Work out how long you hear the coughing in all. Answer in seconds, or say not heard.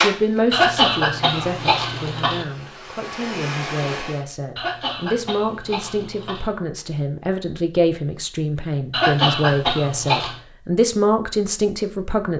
5 s.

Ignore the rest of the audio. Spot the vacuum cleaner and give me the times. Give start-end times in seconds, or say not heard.
0.0-4.2.